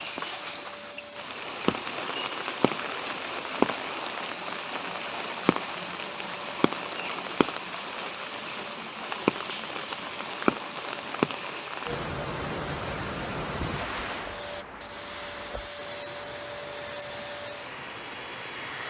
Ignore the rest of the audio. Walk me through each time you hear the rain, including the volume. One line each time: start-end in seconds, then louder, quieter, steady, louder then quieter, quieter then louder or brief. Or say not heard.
0.0-18.8 quieter.